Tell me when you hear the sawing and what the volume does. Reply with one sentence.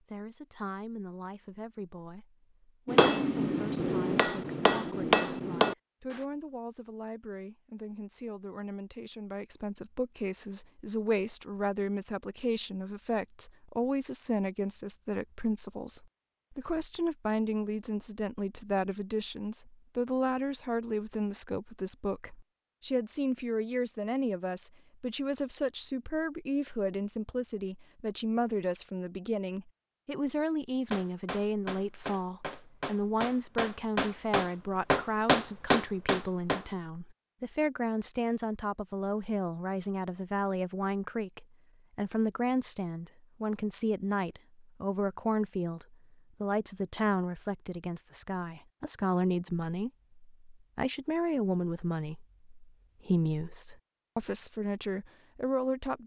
You can't hear the sawing here.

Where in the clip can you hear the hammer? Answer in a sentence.
You can hear the hammer from 2.9 to 6.2 s and from 30.9 to 36.6 s.